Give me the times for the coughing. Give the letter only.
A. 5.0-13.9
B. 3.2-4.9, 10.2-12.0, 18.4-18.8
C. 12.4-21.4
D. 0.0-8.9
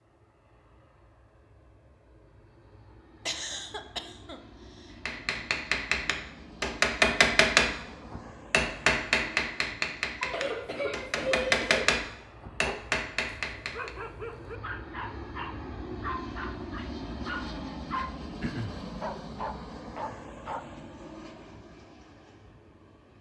B.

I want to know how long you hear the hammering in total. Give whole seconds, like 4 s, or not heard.
9 s.